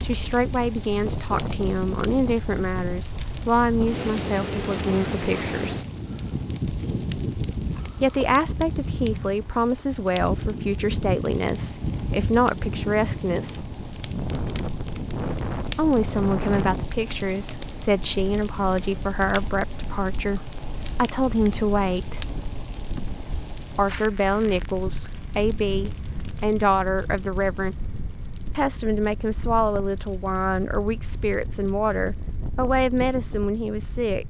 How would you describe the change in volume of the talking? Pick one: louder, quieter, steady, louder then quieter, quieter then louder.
steady.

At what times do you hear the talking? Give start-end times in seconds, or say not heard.
0.0-5.8, 8.0-13.6, 15.7-22.2, 23.8-27.8, 28.6-34.2.